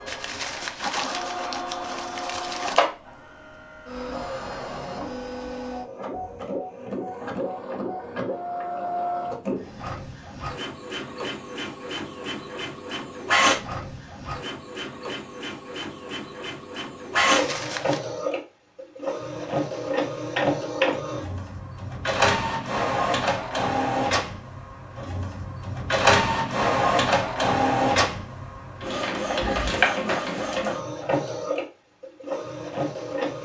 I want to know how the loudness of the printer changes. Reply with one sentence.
The loudness of the printer goes up.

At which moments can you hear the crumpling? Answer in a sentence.
The crumpling can be heard from 0.1 to 2.8 s and from 17.2 to 18.0 s.